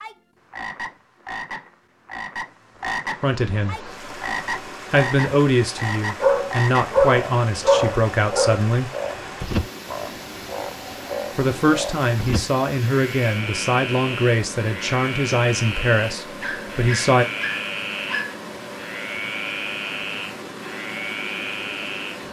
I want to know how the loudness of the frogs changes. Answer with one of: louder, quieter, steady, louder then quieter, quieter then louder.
steady.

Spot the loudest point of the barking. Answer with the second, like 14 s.
7 s.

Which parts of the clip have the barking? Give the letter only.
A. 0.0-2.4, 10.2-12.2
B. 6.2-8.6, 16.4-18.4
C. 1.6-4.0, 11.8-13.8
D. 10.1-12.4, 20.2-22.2
B.